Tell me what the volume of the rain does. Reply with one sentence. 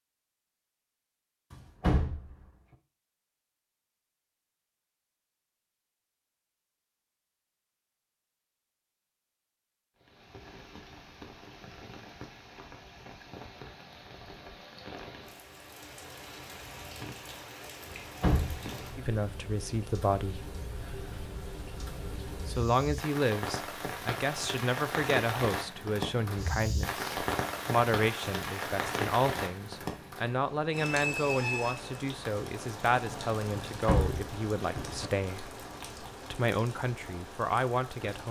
The volume of the rain goes up, then down.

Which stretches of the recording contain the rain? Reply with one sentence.
The rain can be heard from 9.9 to 38.2 s.